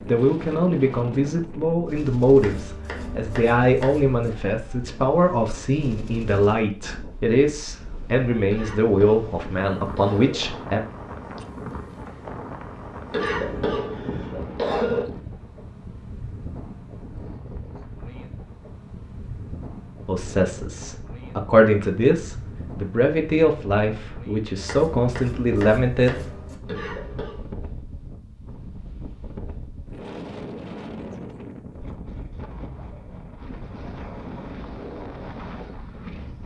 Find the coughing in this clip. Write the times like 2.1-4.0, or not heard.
8.4-10.4, 13.1-15.1, 26.6-27.4.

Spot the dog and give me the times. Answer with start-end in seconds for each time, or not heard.
not heard.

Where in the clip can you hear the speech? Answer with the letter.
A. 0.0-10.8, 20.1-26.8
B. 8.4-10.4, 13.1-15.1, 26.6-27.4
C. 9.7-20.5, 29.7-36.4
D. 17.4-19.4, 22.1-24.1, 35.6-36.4
A.